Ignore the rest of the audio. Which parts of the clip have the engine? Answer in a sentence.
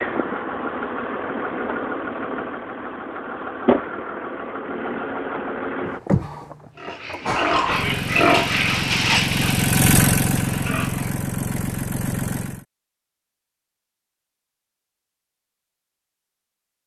You can hear the engine from 0.0 to 12.7 s.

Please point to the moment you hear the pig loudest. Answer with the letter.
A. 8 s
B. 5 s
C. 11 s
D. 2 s
A.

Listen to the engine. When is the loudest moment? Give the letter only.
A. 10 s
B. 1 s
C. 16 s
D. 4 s
A.